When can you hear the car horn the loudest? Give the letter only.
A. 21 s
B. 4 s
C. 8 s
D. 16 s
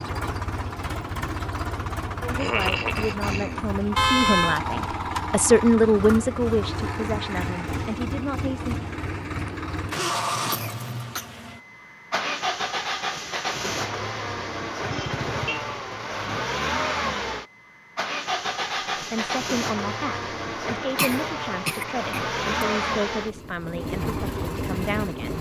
B.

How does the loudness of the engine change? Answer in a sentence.
The loudness of the engine stays about the same.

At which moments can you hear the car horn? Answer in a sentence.
The car horn can be heard from 4.0 to 4.6 s and from 14.8 to 15.7 s.